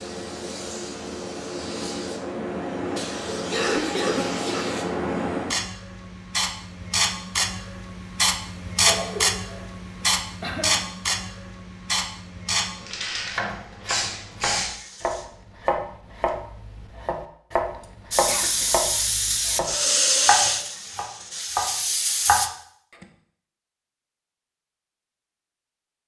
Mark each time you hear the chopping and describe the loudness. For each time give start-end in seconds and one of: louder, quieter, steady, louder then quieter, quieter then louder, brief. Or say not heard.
13.2-23.1 louder.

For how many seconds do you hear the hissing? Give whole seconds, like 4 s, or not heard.
20 s.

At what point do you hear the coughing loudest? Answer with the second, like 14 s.
4 s.